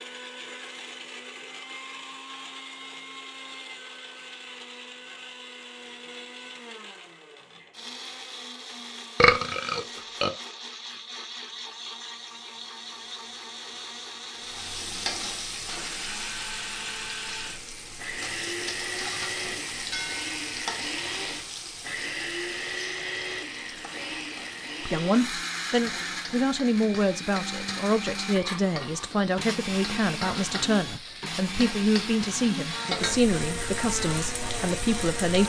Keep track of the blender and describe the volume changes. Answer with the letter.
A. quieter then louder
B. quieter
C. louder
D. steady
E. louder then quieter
C.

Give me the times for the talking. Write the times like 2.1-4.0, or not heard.
24.9-35.4.